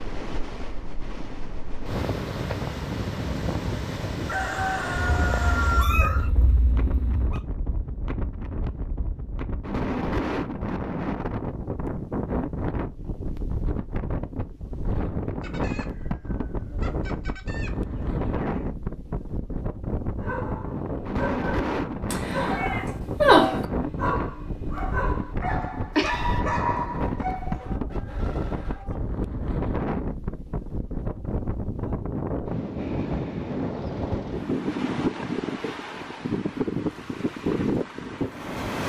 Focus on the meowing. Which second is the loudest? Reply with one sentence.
The volume of the meowing peaks at 23 seconds.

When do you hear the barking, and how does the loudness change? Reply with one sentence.
You can hear the barking from 20.1 to 27.7 s, getting louder.